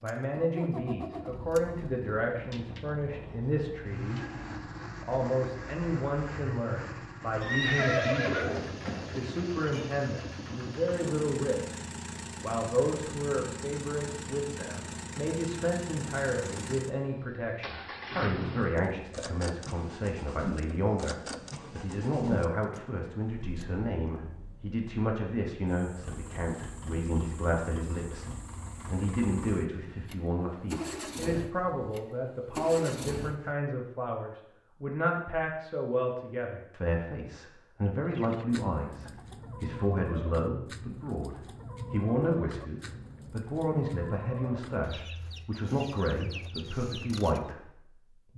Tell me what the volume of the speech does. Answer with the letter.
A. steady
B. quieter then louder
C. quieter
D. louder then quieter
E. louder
A.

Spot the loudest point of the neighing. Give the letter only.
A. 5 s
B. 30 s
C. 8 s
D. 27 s
C.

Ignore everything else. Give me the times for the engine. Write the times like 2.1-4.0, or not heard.
0.0-33.5.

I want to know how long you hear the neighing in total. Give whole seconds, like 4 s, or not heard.
2 s.